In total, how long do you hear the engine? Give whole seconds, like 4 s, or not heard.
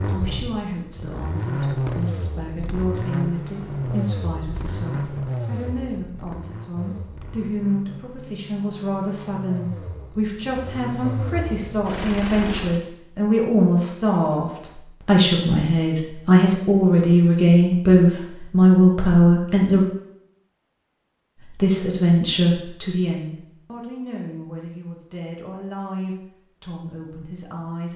13 s.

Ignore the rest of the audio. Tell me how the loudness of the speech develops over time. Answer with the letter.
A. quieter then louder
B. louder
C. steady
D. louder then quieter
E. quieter
D.